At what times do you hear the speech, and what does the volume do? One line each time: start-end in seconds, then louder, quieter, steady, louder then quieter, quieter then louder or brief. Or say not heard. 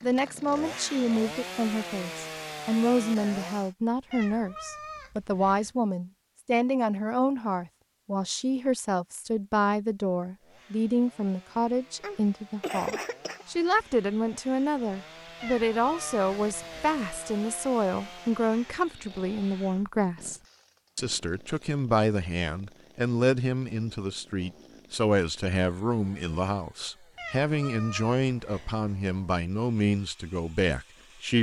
0.0-31.3 steady.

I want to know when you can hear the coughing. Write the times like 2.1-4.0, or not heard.
12.0-13.4.